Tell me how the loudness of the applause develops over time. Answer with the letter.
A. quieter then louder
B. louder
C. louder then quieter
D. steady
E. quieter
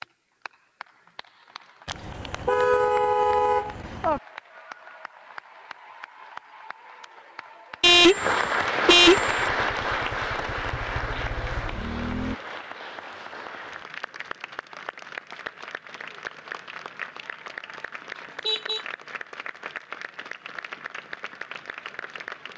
C.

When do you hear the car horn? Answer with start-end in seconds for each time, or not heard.
1.9-4.2, 7.8-9.3, 18.4-18.9.